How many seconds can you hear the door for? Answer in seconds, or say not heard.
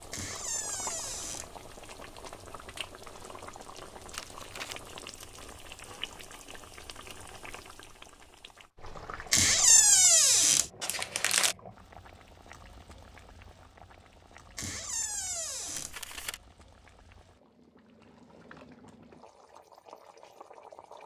4 s.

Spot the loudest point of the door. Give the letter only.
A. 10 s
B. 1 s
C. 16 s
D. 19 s
A.